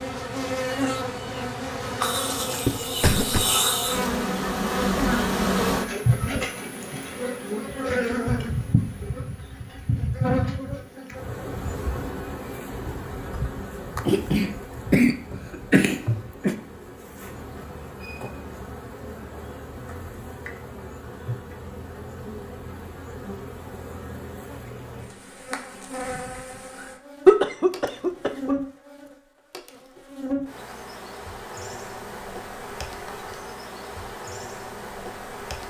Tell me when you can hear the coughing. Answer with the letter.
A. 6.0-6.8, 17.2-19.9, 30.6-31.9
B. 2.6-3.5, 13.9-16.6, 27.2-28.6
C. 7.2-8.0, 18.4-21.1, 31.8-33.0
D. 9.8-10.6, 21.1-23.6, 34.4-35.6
B.